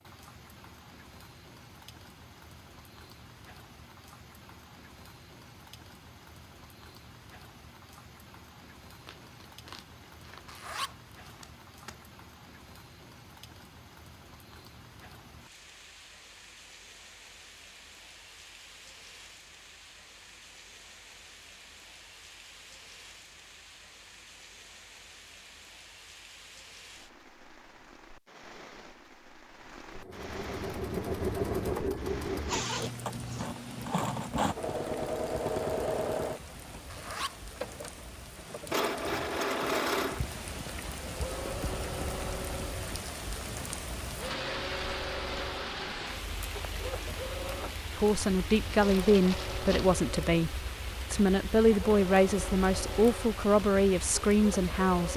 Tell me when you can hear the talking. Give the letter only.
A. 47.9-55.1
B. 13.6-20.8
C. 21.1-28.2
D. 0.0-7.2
A.